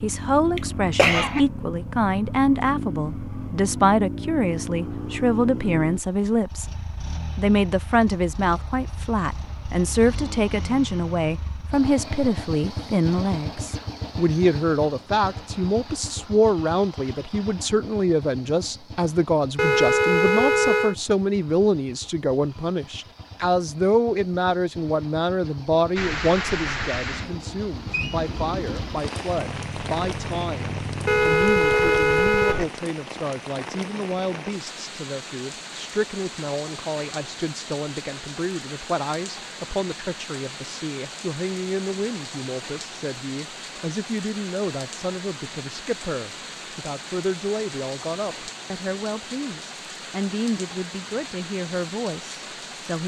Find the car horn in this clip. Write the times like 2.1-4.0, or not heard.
19.6-20.9, 31.1-32.7.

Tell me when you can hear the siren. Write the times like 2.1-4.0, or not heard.
not heard.